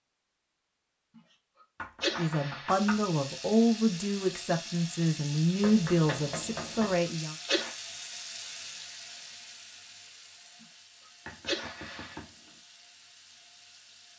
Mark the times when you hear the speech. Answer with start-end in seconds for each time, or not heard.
2.1-7.3.